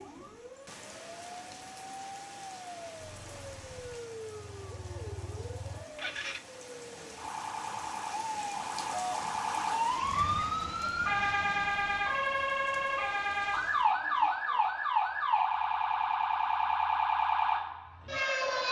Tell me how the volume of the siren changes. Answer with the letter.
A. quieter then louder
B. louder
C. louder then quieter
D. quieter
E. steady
B.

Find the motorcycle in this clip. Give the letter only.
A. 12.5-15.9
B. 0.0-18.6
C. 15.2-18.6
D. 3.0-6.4
D.